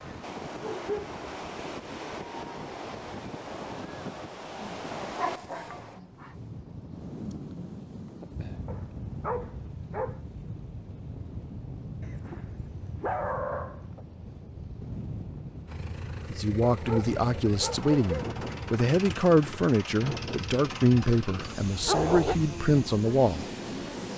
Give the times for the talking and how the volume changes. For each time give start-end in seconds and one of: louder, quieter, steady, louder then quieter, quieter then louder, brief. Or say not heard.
16.3-23.4 steady.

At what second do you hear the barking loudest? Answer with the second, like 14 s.
22 s.